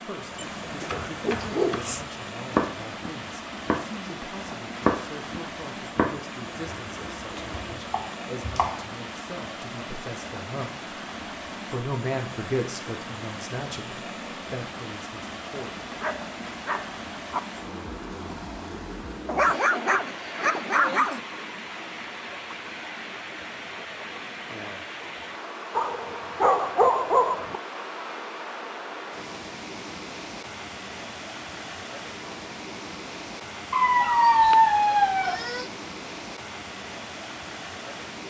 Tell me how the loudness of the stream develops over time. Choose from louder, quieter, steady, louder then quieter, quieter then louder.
steady.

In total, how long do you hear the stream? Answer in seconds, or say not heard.
38 s.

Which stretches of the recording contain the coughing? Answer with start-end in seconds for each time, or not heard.
not heard.